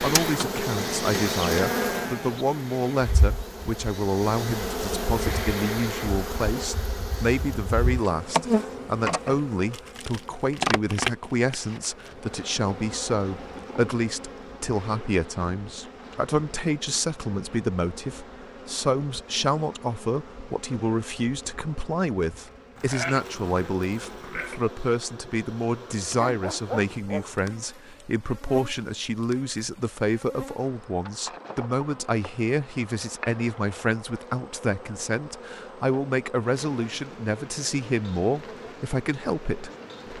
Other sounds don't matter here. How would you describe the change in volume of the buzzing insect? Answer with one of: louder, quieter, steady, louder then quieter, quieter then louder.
quieter.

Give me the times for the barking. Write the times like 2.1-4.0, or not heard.
26.0-27.4.